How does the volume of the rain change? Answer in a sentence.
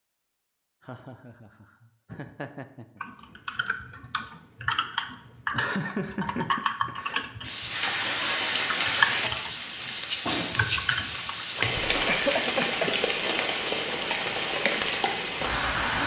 The loudness of the rain stays about the same.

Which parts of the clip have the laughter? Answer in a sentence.
The laughter can be heard from 0.8 to 3.0 s, from 5.5 to 7.3 s and from 12.1 to 12.9 s.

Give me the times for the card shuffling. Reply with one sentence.
The card shuffling can't be heard in this clip.